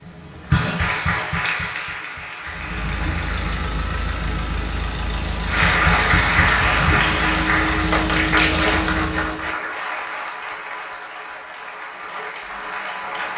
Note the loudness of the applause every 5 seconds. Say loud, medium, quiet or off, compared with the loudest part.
medium, loud, medium.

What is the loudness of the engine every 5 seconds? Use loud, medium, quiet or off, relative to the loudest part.
loud, loud, off.